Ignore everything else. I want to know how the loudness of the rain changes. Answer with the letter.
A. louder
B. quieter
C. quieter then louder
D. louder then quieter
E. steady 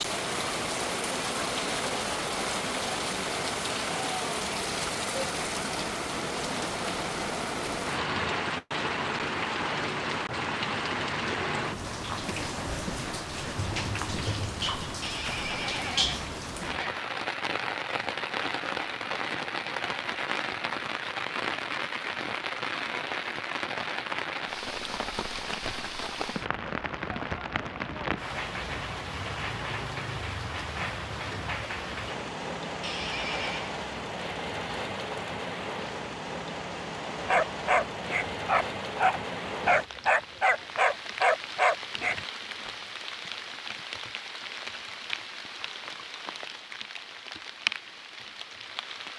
B.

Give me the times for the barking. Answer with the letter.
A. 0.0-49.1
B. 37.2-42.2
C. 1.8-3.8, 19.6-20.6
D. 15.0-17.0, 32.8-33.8
B.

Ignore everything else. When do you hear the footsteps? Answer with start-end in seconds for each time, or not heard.
not heard.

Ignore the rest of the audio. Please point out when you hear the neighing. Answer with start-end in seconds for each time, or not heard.
15.0-17.0, 32.8-33.8.